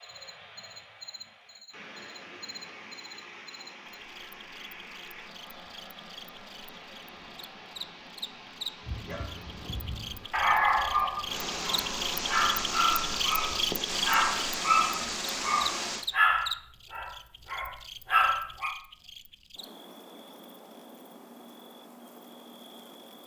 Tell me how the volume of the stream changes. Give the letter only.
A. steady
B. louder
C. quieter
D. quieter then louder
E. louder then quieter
B.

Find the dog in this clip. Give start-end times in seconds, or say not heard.
8.8-18.8.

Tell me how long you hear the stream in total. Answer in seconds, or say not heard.
16 s.